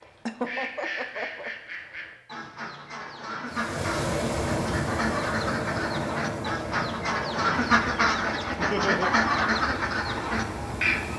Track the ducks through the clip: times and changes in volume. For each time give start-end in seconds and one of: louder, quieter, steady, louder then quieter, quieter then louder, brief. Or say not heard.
0.0-11.1 louder.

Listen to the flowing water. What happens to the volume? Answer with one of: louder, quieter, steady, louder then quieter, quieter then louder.
quieter.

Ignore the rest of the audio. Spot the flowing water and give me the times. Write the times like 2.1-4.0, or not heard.
3.5-11.1.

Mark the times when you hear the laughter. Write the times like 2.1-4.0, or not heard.
0.2-1.5, 8.6-9.1.